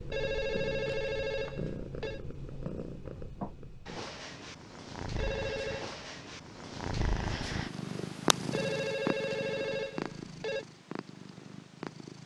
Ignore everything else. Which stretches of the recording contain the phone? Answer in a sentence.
You can hear the phone from 0.1 to 2.2 s, from 5.2 to 6.0 s and from 8.5 to 10.7 s.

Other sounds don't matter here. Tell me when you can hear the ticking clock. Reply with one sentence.
You can't hear the ticking clock here.